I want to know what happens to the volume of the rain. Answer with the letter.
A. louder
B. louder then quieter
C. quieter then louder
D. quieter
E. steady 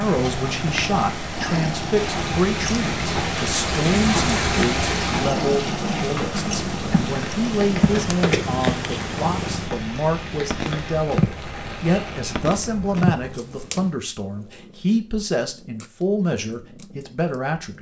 B.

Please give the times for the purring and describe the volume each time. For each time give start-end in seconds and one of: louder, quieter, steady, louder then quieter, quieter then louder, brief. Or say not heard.
0.0-17.7 quieter.